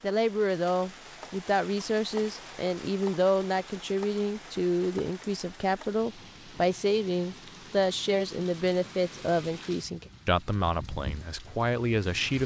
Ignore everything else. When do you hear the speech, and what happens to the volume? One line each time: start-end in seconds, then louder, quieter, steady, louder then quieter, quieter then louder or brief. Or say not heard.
0.0-12.4 steady.